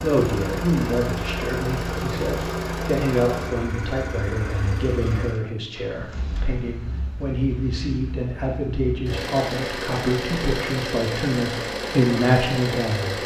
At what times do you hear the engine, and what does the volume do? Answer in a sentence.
The engine can be heard from 0.0 to 13.2 s, getting quieter then louder.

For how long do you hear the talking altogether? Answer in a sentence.
The talking can be heard for 13 seconds in total.